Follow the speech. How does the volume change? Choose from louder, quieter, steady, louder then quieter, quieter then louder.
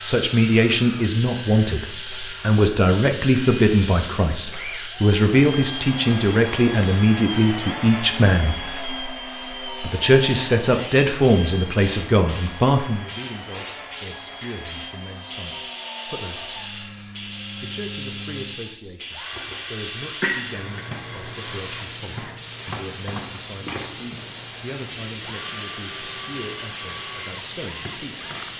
quieter.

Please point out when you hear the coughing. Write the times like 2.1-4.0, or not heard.
20.2-20.8.